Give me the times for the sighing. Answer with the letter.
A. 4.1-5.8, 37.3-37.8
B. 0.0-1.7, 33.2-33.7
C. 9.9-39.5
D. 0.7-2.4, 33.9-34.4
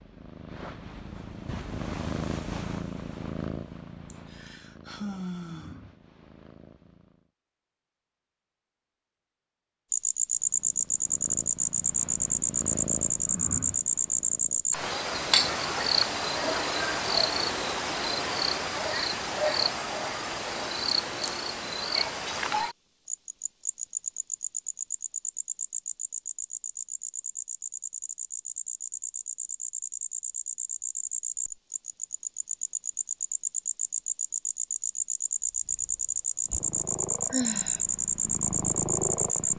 A.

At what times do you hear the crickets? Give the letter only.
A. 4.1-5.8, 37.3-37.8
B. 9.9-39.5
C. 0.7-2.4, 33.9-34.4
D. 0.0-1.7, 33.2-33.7
B.